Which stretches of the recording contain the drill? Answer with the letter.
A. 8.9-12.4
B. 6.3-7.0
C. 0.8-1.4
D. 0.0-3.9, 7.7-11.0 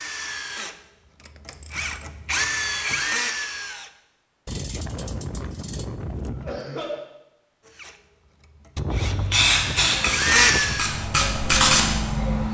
D.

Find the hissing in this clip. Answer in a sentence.
You can hear the hissing from 8.9 to 12.4 s.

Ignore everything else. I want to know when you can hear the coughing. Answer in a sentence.
The coughing can be heard from 6.3 to 7.0 s.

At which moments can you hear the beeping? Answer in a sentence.
The beeping can't be heard in this clip.